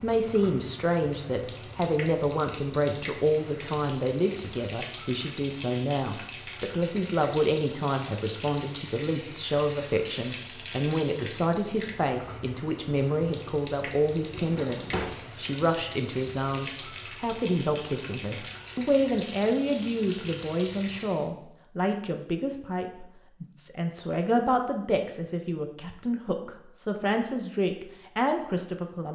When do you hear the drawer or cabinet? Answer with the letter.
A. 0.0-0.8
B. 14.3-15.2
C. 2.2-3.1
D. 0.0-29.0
B.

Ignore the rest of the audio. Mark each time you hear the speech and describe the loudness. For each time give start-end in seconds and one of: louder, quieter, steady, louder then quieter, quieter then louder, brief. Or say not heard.
0.0-29.0 steady.